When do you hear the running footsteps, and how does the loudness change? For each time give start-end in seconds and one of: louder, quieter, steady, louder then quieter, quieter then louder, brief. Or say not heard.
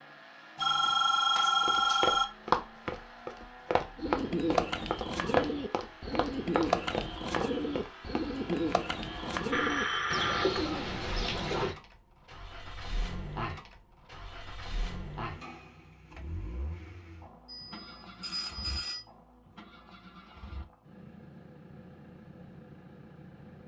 1.6-8.6 quieter.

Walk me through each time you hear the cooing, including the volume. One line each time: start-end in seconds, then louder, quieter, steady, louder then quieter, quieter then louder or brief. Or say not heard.
4.0-11.8 steady.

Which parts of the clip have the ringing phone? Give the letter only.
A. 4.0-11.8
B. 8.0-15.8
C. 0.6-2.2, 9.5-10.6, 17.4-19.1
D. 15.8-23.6
C.